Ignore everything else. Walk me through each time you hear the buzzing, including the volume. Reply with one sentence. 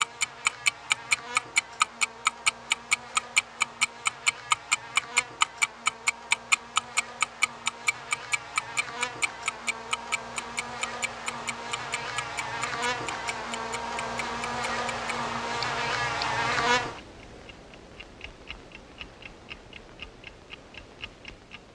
You can hear the buzzing from 0.0 to 17.0 s, getting louder.